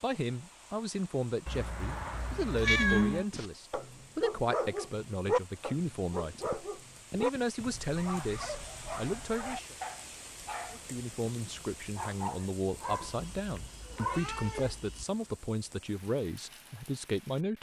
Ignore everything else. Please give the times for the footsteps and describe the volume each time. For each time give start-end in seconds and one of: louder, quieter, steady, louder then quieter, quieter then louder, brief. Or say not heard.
not heard.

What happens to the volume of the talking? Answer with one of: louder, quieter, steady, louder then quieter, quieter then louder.
steady.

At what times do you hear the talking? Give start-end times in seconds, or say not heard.
0.0-9.8, 10.7-17.5.